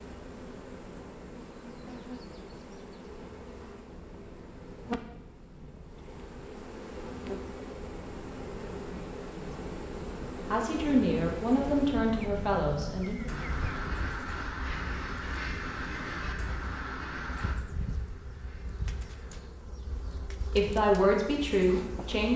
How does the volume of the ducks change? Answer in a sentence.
The volume of the ducks goes down.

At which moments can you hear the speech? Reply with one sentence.
You can hear the speech from 10.5 to 13.3 s and from 20.4 to 22.3 s.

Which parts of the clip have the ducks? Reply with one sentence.
The ducks can be heard from 13.2 to 19.4 s.